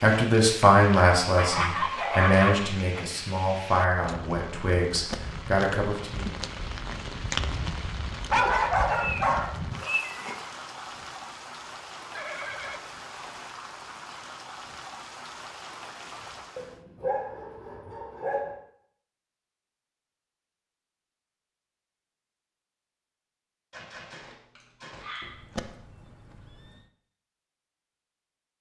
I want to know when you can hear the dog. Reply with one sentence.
You can hear the dog from 1.4 to 2.9 s, from 8.3 to 10.3 s, from 16.6 to 18.6 s and from 23.7 to 25.8 s.